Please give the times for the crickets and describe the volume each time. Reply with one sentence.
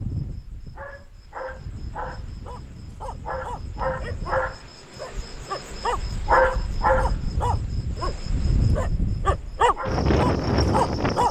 You can hear the crickets from 0.0 to 11.2 s, getting louder then quieter.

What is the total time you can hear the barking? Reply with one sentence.
The barking can be heard for 9 seconds in total.